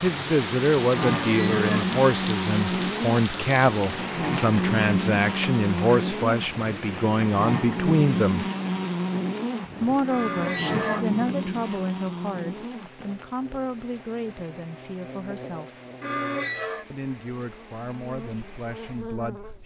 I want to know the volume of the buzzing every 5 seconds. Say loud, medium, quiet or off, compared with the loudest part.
loud, loud, medium, quiet.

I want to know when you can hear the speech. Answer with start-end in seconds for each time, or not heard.
0.0-8.4, 9.8-15.8, 16.9-19.6.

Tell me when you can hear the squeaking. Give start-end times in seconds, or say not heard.
1.1-1.9, 10.1-11.1, 16.0-16.9.